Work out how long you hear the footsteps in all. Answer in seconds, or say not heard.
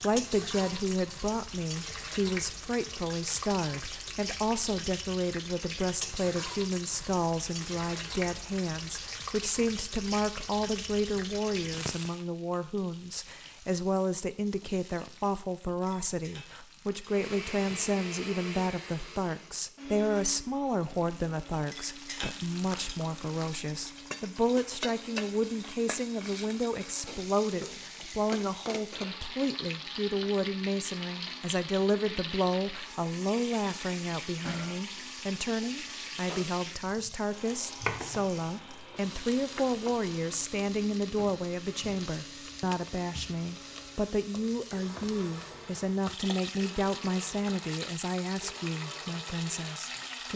not heard.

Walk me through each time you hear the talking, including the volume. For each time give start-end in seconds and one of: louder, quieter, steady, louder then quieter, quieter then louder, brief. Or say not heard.
0.0-50.3 steady.